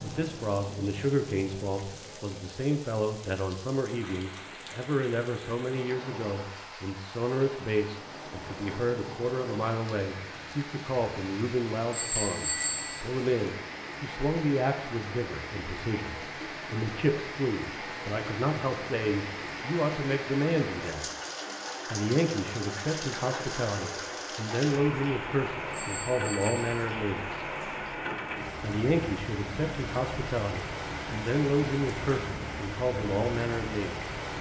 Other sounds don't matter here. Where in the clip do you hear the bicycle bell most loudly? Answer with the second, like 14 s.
13 s.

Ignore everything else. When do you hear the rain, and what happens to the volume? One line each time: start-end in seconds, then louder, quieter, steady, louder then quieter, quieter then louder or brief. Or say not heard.
0.0-34.3 louder.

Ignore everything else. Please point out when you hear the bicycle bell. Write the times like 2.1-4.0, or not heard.
11.9-13.1, 25.7-26.9.